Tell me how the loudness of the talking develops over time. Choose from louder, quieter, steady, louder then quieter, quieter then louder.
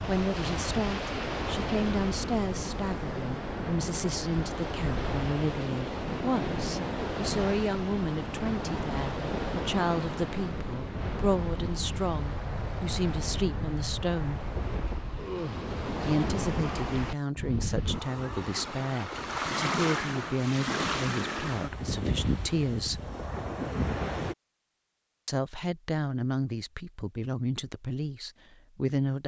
steady.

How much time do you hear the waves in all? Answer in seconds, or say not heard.
24 s.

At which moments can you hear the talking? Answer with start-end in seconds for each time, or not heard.
0.1-14.4, 16.1-23.1, 25.2-29.2.